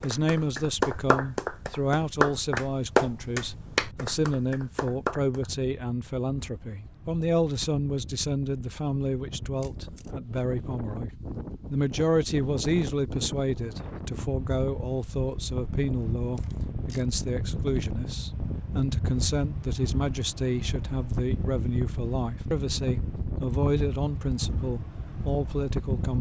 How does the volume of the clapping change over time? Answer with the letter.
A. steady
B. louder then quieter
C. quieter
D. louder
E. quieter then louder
C.